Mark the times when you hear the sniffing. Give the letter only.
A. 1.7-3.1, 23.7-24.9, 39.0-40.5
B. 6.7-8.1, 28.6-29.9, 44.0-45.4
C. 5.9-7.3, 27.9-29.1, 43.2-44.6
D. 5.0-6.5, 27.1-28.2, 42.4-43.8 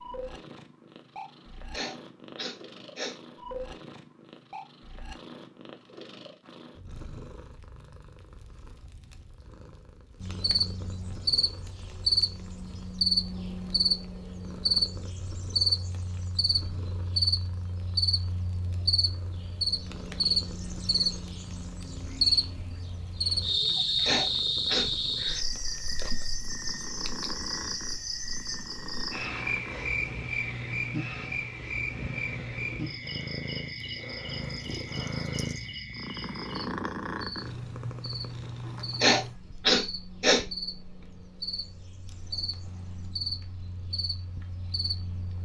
A.